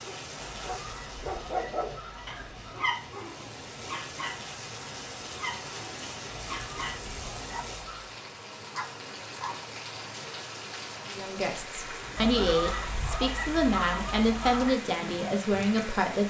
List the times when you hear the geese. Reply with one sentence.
The geese can be heard from 0.4 to 2.9 s, from 6.5 to 8.2 s and from 12.2 to 14.8 s.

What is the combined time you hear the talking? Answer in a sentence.
The talking can be heard for 5 seconds in total.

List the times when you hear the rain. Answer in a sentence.
You can hear the rain from 0.0 to 16.2 s.